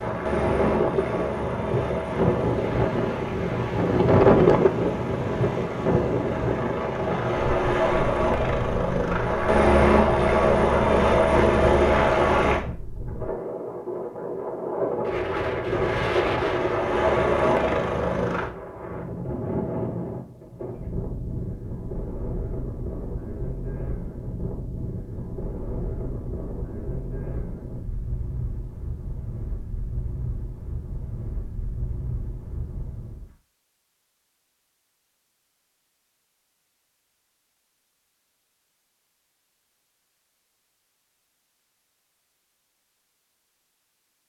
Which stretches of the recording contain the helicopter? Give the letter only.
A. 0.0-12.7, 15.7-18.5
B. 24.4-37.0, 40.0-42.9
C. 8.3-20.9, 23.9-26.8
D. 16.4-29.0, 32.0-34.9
A.